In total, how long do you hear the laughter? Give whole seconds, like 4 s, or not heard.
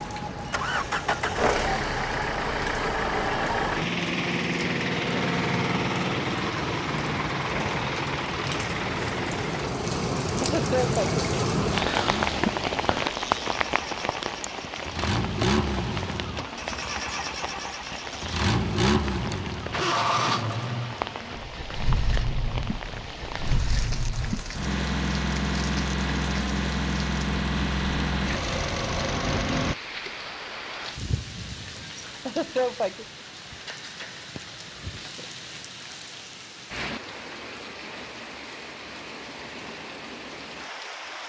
2 s.